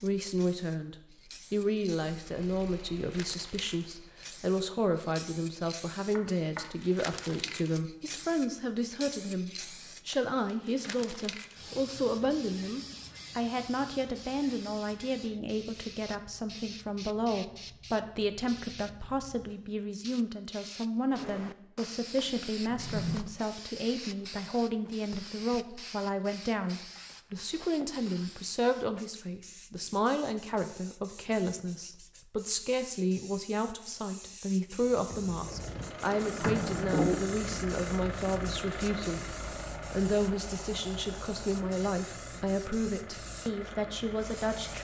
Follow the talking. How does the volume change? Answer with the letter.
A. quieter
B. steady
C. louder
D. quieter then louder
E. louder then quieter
B.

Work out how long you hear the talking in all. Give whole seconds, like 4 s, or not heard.
45 s.